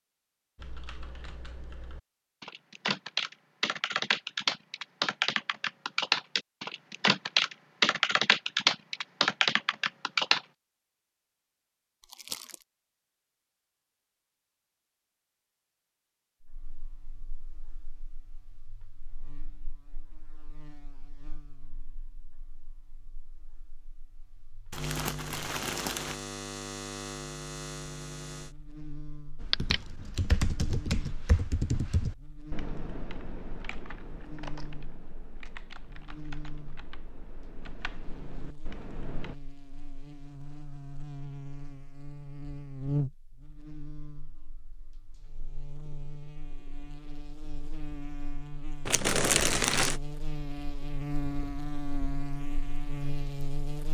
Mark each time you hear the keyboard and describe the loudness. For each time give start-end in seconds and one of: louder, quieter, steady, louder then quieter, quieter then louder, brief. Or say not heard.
0.6-10.4 louder
29.4-39.4 quieter.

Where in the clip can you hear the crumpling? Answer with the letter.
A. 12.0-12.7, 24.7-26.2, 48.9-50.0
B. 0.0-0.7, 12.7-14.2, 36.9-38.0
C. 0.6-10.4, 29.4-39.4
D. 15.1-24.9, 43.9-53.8
A.